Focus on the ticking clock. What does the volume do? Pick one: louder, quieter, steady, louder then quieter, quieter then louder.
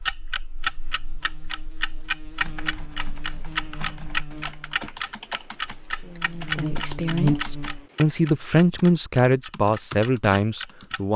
quieter.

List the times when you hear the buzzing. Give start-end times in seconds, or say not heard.
0.0-7.8.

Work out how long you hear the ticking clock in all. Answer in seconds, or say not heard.
11 s.